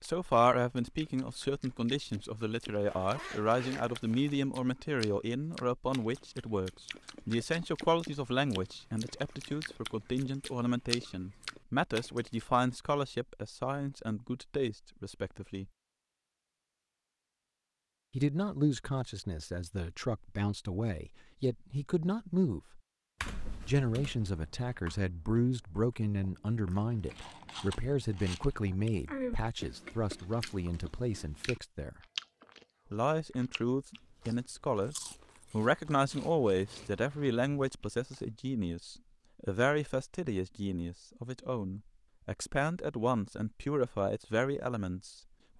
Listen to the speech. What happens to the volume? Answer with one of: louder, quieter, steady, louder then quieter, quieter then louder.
steady.